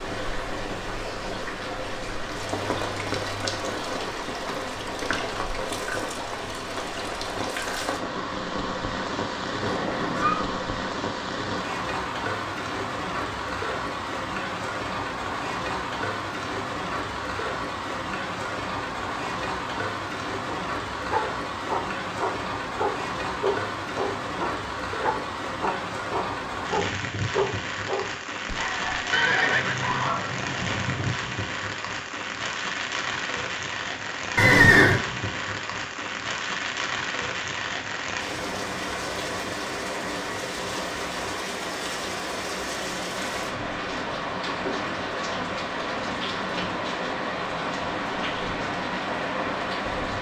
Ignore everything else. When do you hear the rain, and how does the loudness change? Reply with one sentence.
The rain can be heard from 0.0 to 50.1 s, at a steady volume.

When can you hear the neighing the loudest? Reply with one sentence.
The loudest moment of the neighing is at 35 seconds.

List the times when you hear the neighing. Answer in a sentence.
The neighing can be heard from 9.6 to 10.4 s, from 29.1 to 31.1 s and from 34.4 to 35.0 s.